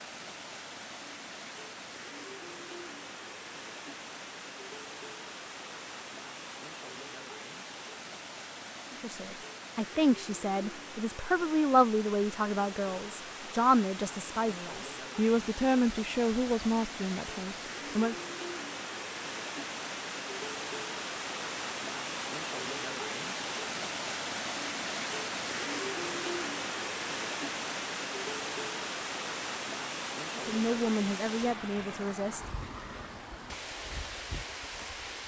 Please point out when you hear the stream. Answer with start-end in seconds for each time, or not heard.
0.0-35.2.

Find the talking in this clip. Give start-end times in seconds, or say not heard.
8.9-18.1, 30.4-32.5.